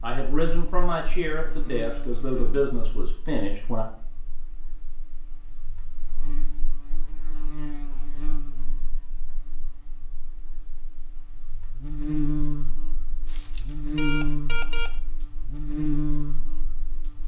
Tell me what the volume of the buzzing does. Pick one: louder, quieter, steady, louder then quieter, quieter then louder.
quieter then louder.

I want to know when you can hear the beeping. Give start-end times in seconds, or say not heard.
13.2-14.9.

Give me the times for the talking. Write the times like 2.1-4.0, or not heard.
0.0-3.9.